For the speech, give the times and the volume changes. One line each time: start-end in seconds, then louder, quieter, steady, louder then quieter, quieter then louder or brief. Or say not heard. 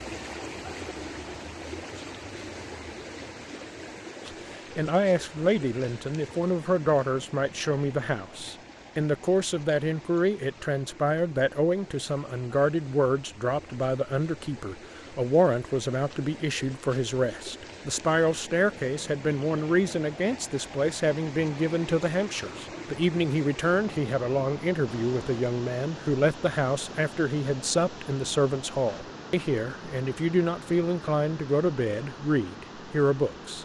4.2-33.5 steady.